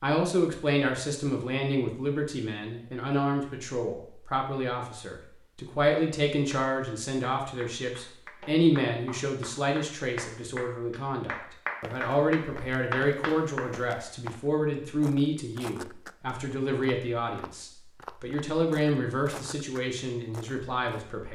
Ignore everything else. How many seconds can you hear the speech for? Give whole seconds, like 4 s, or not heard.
21 s.